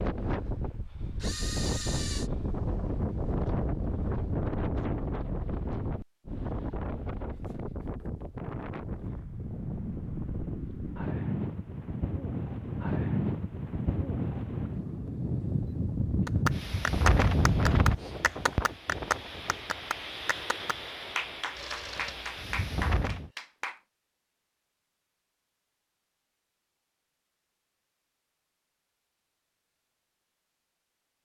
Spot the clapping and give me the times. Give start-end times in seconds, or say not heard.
16.2-23.8.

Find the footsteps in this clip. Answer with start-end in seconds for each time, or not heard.
not heard.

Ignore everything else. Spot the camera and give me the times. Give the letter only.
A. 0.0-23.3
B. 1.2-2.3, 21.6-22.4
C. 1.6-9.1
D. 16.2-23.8
B.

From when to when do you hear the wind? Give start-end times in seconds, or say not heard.
0.0-23.3.